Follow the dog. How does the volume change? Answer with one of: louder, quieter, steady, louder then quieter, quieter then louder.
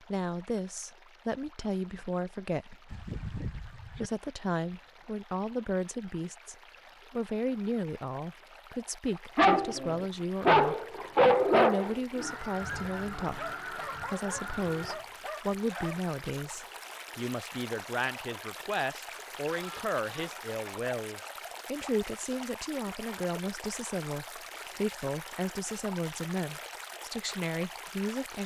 quieter.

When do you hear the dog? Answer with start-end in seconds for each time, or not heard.
9.3-16.1.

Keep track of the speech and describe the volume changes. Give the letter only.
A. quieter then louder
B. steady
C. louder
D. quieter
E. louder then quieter
B.